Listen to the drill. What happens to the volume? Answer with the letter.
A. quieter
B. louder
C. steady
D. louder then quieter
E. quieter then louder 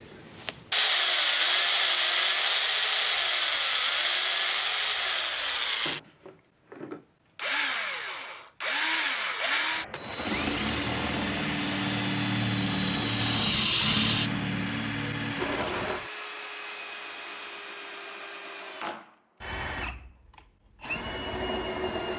A.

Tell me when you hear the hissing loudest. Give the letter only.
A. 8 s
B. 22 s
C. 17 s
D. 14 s
D.